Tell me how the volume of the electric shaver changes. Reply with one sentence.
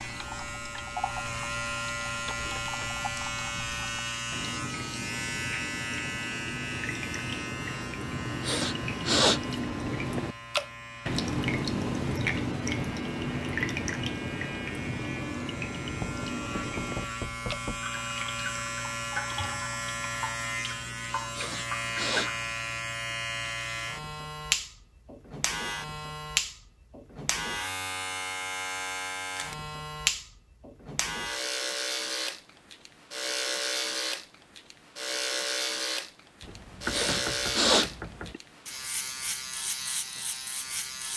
The volume of the electric shaver goes down, then up.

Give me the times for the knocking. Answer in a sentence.
You can hear the knocking from 2.2 to 2.9 s, from 15.9 to 17.9 s and from 36.4 to 38.4 s.